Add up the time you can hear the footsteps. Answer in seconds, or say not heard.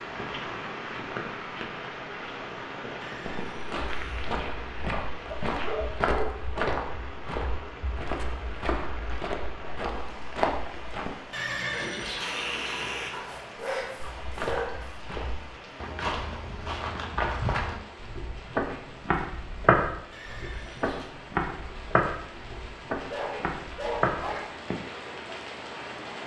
19 s.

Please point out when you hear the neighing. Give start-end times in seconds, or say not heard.
3.0-4.3, 11.3-13.2, 20.1-21.1.